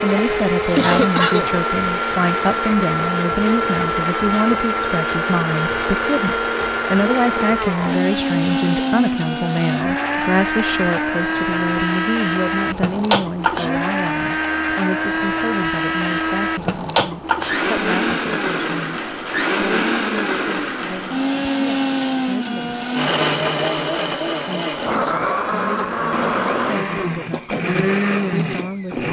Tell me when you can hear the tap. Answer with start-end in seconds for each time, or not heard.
not heard.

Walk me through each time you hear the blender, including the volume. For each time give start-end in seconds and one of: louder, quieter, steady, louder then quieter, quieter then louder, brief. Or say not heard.
0.0-29.0 steady.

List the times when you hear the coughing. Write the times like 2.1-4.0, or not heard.
0.8-1.5.